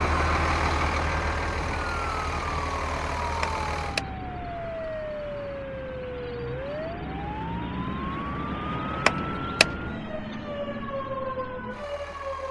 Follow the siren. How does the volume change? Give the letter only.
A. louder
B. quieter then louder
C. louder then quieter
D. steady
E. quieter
D.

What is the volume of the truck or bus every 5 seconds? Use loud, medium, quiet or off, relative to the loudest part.
loud, medium, medium.